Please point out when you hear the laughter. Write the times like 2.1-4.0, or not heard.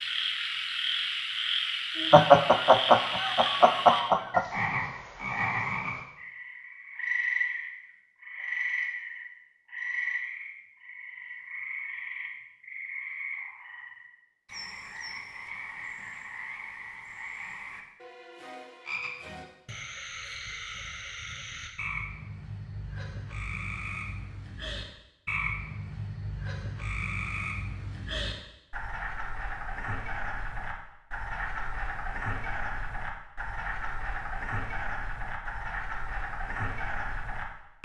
2.1-4.5.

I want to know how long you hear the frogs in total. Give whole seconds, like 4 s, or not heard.
38 s.